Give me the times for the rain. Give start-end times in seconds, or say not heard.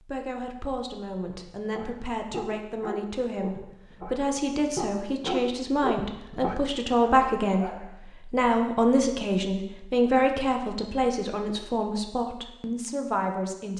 not heard.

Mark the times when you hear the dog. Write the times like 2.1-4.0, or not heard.
1.2-8.0.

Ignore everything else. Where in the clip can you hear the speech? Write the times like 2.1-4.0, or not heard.
0.0-13.7.